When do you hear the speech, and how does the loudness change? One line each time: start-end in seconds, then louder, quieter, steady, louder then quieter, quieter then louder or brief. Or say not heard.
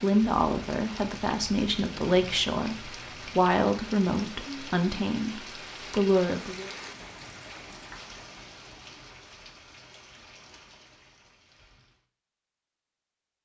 0.0-6.7 steady.